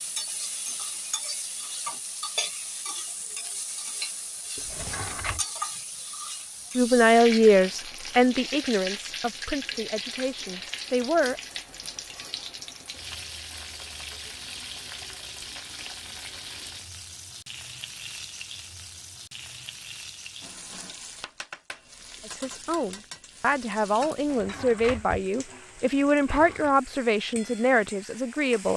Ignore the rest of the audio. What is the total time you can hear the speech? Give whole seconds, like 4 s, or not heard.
11 s.